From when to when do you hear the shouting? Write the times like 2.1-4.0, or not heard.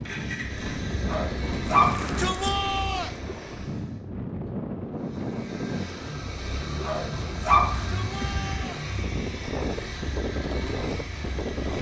1.8-3.2, 7.8-8.8.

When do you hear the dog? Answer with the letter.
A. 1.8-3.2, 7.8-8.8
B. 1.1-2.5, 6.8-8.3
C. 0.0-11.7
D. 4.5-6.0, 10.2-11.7
B.